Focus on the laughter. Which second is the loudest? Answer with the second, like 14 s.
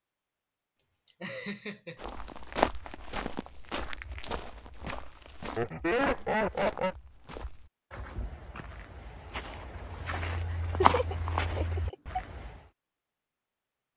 6 s.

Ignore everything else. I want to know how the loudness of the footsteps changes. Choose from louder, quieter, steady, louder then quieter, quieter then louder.
quieter then louder.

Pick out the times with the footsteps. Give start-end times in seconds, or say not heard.
1.9-12.7.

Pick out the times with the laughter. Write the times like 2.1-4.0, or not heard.
0.8-1.9, 5.5-7.0, 10.8-12.2.